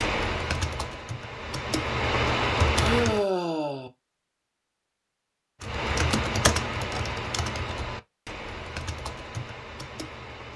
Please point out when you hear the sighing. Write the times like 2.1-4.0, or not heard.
2.8-3.9.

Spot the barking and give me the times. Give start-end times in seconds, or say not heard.
not heard.